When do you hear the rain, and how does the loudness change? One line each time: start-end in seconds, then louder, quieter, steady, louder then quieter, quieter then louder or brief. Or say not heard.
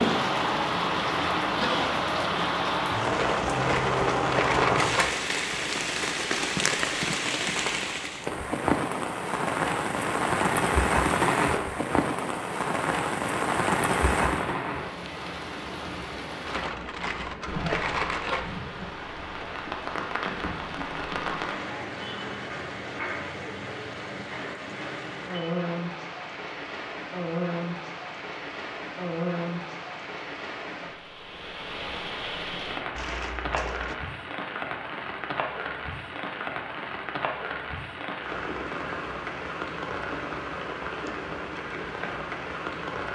0.0-43.1 quieter.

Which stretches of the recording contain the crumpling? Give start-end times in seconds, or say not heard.
3.1-5.2, 16.4-18.4, 33.0-34.0.